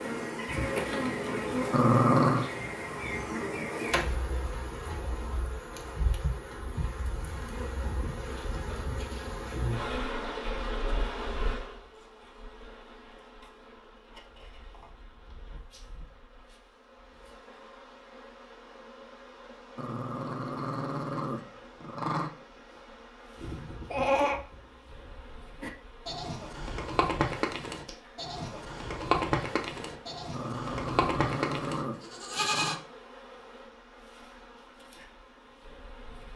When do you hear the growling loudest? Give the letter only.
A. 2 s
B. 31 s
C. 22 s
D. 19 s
A.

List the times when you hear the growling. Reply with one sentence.
The growling can be heard from 1.7 to 2.5 s, from 19.8 to 22.3 s and from 30.3 to 32.9 s.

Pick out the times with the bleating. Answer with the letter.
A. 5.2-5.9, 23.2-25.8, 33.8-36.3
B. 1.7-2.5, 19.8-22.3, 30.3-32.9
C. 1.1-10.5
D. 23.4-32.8
D.